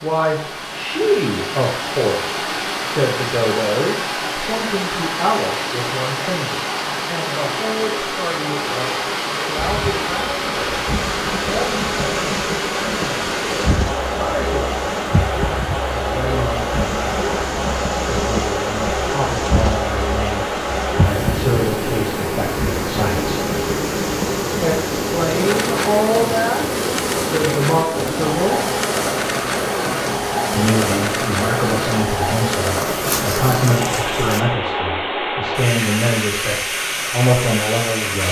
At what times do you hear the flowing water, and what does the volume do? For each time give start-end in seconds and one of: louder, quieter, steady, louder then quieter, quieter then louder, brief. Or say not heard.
0.0-38.2 steady.